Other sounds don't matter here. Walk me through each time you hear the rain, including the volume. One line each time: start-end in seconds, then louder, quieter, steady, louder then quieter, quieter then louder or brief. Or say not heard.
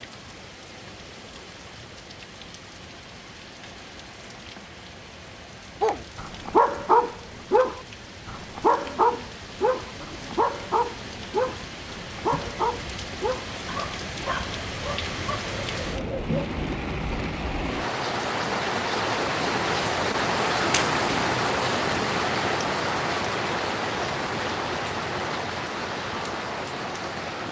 0.0-27.4 louder.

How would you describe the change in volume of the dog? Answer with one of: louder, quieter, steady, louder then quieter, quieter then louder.
quieter.